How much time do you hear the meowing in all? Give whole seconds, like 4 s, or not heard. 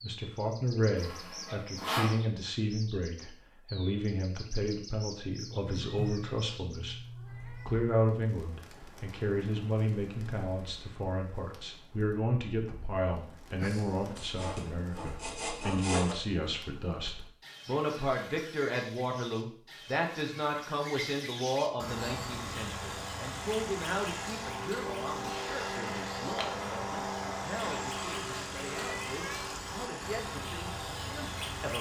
4 s.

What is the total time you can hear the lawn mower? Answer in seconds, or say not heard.
10 s.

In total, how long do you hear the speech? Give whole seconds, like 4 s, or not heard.
31 s.